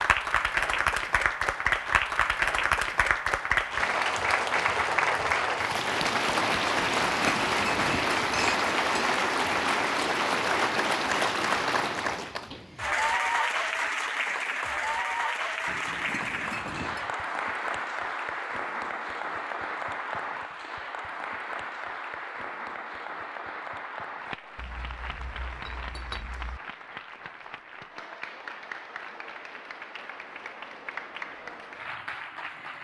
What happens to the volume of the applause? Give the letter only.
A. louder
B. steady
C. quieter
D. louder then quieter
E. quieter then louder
C.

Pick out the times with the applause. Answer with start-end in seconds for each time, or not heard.
0.0-32.7.